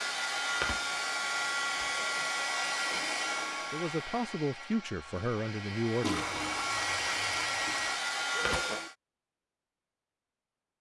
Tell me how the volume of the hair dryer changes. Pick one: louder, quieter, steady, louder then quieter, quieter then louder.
quieter then louder.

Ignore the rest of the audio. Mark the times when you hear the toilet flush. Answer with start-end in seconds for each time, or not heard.
2.8-3.8, 6.0-8.0.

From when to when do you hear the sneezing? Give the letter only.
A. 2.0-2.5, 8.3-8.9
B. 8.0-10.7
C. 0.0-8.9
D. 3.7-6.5
A.